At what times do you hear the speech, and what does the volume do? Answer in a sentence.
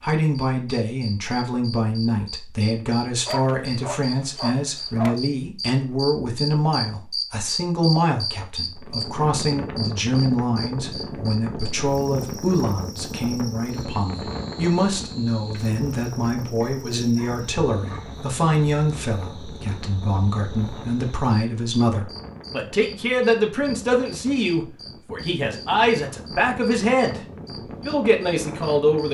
The speech can be heard from 0.0 to 27.2 s, at a steady volume; and briefly from 27.8 to 29.0 s.